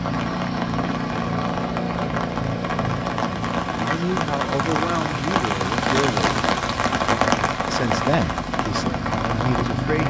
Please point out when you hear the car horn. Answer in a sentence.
You can't hear the car horn here.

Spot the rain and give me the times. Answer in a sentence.
You can hear the rain from 0.0 to 10.0 s.